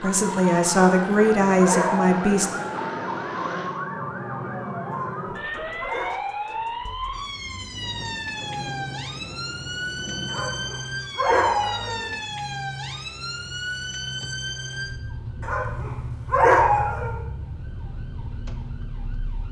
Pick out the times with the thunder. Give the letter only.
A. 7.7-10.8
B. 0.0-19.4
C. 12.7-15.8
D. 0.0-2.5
A.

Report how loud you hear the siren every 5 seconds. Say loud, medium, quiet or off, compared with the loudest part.
loud, loud, loud, medium.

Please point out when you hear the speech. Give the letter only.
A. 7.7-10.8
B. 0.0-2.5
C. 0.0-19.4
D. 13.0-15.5
B.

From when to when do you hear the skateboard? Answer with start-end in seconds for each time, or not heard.
not heard.